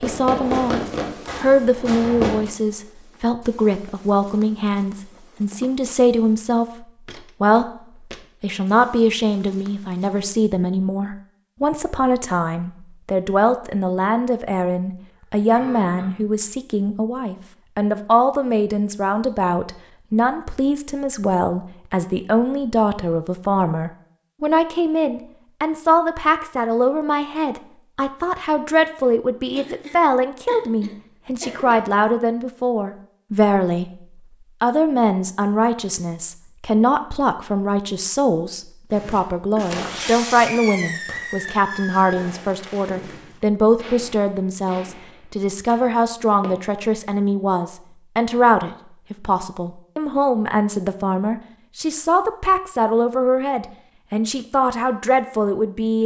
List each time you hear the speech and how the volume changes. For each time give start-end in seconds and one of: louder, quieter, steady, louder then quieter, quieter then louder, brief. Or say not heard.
0.0-0.8 brief
1.4-7.7 steady
8.4-56.0 steady.